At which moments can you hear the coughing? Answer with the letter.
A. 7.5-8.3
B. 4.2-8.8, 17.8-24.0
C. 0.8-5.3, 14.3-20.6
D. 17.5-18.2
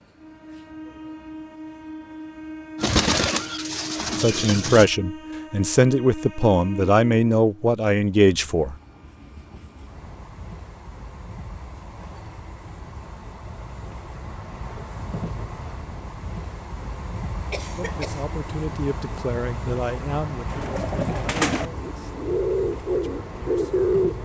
D.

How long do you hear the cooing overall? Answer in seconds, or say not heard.
6 s.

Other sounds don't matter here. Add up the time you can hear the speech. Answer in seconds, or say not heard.
11 s.